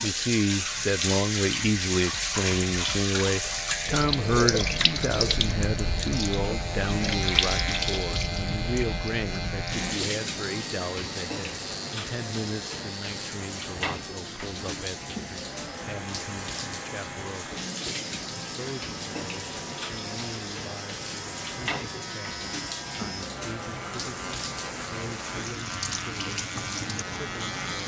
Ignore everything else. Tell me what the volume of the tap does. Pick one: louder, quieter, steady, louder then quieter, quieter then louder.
quieter.